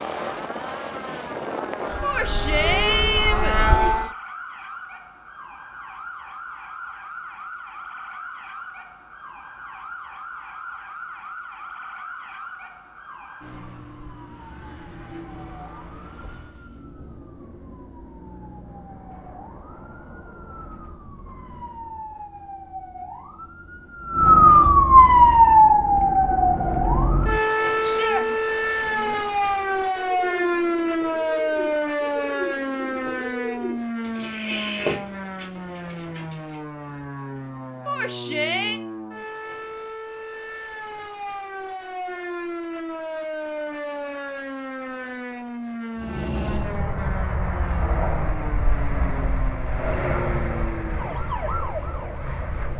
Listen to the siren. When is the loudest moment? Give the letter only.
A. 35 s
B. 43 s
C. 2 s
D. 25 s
D.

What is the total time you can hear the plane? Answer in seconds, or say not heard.
11 s.